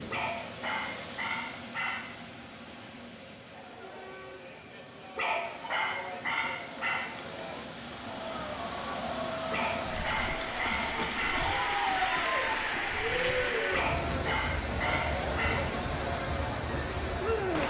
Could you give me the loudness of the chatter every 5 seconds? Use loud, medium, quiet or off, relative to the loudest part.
quiet, medium, loud, medium.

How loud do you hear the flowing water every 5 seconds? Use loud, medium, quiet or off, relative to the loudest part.
medium, medium, loud, loud.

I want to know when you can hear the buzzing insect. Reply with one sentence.
You can't hear the buzzing insect here.